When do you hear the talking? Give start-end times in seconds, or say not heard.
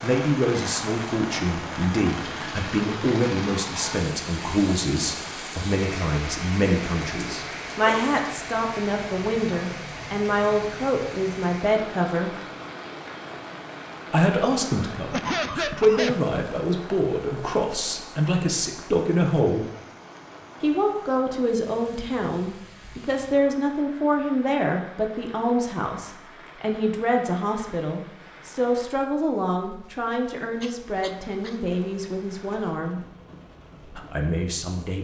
0.0-12.3, 14.1-19.6, 20.6-33.0, 33.9-35.0.